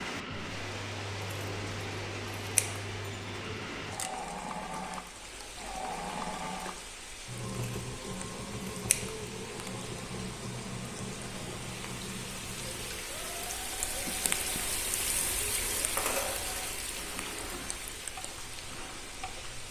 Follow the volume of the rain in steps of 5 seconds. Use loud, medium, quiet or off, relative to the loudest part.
loud, medium, loud, loud.